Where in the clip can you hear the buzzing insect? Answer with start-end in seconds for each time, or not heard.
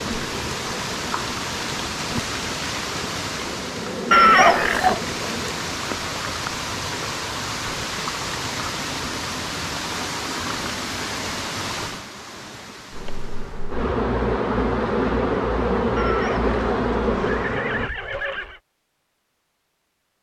0.0-5.5, 12.9-17.9.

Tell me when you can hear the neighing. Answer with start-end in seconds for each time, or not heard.
4.1-5.0, 15.9-18.6.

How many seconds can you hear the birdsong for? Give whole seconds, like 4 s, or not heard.
not heard.